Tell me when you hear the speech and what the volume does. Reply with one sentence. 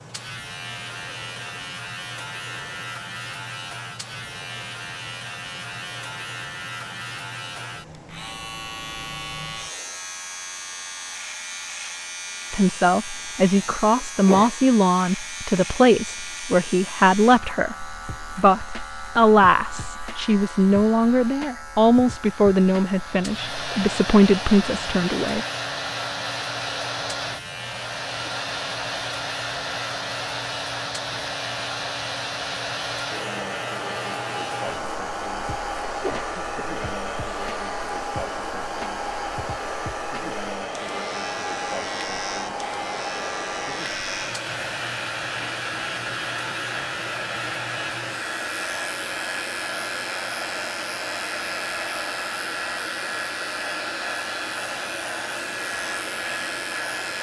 You can hear the speech from 12.5 to 25.4 s, at a steady volume.